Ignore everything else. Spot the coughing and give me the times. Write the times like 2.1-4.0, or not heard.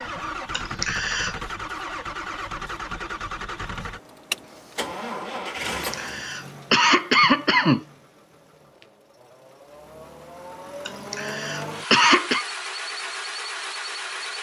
0.5-1.4, 5.7-7.8, 10.8-12.4.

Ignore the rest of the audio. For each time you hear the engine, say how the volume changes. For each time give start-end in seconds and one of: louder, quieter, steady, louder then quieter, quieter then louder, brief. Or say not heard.
0.0-14.3 quieter then louder.